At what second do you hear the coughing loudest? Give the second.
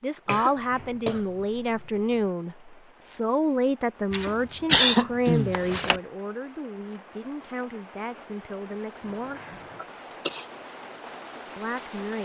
5 s.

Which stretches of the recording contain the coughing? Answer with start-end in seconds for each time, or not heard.
0.2-2.2, 4.1-6.0, 9.1-10.4.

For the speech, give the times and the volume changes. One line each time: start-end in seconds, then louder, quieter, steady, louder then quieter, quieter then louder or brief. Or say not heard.
0.0-9.4 quieter
11.6-12.1 brief.